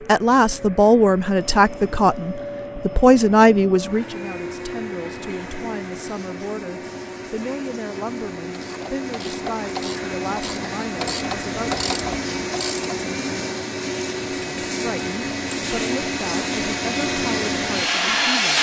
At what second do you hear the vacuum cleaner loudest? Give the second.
18 s.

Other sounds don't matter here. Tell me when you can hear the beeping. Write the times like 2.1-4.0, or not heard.
not heard.